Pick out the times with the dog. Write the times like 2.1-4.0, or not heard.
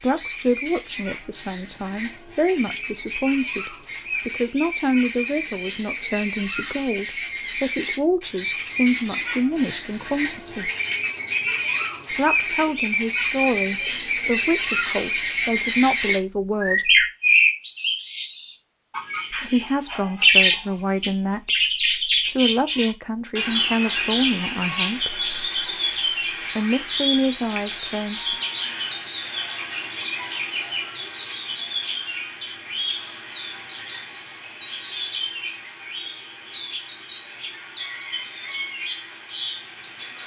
not heard.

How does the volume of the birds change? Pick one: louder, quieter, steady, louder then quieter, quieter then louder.
louder then quieter.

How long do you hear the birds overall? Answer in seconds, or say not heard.
40 s.